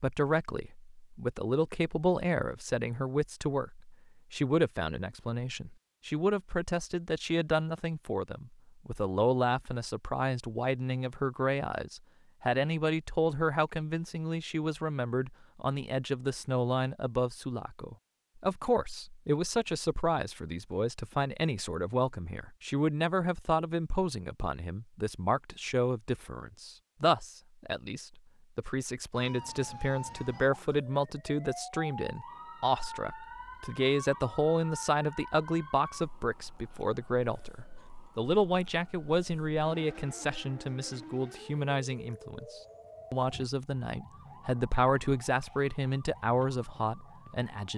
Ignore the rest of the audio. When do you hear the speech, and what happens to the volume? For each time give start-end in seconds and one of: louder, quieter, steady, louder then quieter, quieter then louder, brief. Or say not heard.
0.0-47.7 steady.